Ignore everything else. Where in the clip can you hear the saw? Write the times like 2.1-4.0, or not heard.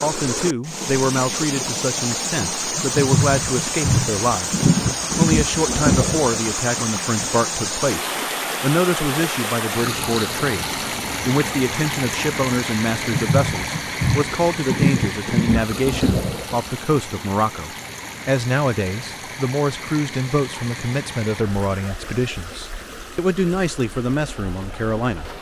not heard.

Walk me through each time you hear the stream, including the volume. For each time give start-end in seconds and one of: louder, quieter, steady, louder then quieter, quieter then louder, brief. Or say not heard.
0.0-25.3 quieter.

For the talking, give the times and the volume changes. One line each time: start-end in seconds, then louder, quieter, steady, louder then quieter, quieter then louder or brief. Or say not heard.
0.0-25.2 steady.